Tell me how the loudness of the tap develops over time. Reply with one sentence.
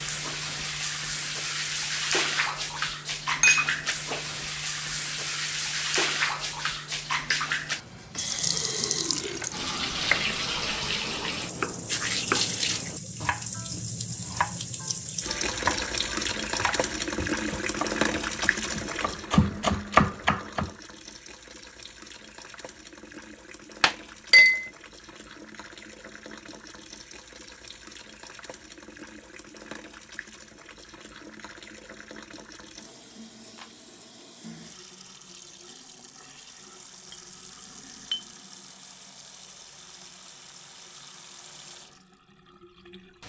The volume of the tap goes down.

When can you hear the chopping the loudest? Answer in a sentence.
The volume of the chopping peaks at 20 seconds.